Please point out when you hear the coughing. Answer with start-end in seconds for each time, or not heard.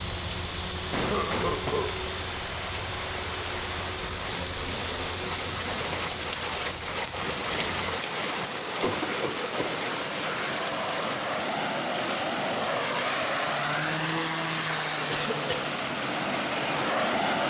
0.9-1.9, 8.6-9.8, 15.1-15.7.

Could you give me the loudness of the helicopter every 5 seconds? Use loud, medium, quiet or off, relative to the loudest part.
loud, medium, loud, loud.